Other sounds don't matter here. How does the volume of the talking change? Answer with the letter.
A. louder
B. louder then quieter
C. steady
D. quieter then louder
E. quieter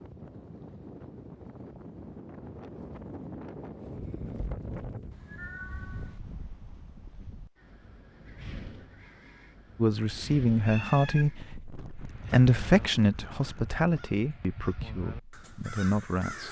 E.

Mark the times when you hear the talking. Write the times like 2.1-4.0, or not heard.
9.8-16.4.